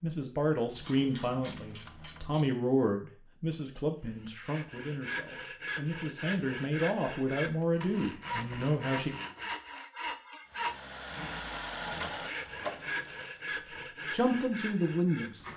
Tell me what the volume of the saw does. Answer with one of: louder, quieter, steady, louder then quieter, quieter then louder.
steady.